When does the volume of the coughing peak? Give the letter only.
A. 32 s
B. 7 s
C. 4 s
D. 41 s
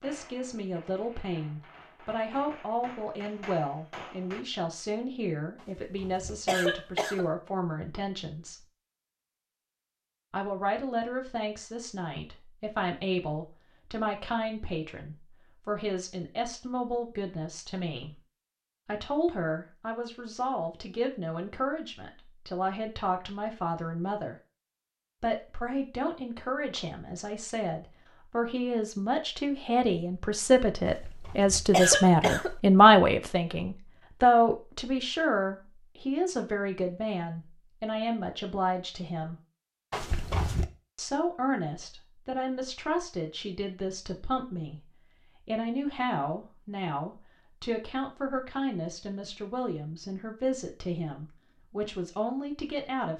A.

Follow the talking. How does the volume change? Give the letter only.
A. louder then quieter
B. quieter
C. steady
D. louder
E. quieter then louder
A.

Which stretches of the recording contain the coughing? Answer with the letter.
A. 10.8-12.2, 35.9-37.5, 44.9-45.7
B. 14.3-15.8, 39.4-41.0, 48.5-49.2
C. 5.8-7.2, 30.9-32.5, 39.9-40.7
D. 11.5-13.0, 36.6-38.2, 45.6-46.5
C.